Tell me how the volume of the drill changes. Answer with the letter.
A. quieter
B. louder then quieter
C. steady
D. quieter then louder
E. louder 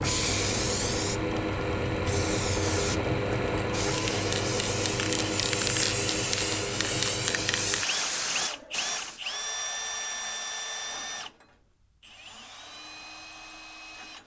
A.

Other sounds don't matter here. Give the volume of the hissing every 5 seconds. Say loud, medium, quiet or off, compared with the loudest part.
loud, loud, off.